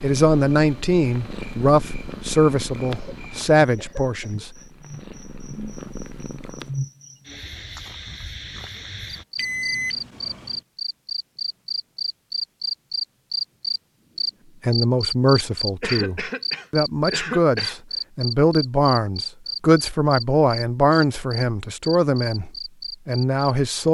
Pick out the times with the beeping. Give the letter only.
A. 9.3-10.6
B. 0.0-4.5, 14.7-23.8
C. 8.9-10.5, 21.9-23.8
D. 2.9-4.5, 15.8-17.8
A.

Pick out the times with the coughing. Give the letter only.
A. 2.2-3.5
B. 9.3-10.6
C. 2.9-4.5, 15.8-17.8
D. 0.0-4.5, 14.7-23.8
C.